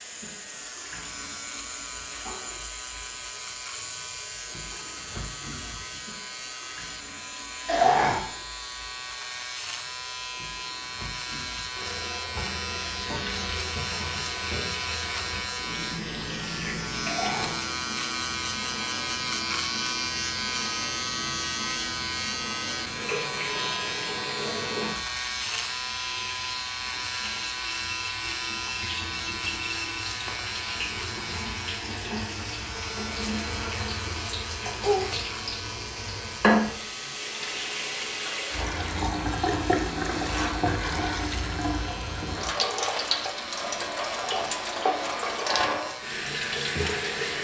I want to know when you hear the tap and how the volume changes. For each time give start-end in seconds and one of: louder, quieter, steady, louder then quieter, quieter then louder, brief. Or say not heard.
0.0-47.3 louder.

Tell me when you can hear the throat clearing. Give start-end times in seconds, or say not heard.
7.7-8.2, 17.1-17.6, 44.0-44.6.